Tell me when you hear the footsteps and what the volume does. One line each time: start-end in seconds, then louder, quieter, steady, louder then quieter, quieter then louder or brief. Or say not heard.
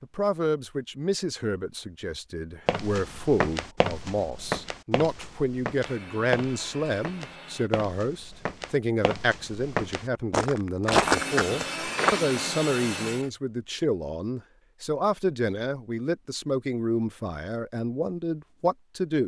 2.6-12.4 quieter then louder.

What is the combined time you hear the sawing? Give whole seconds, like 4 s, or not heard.
4 s.